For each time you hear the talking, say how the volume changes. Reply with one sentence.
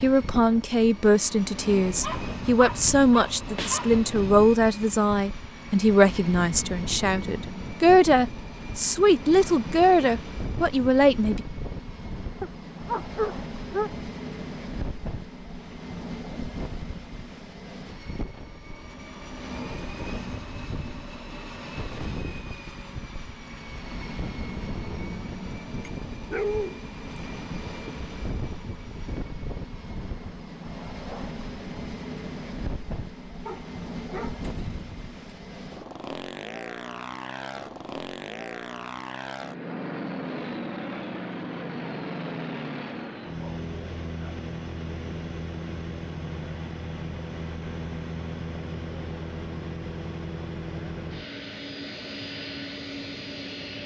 The talking can be heard from 0.0 to 11.4 s, at a steady volume.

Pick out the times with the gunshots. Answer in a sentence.
The gunshots can't be heard in this clip.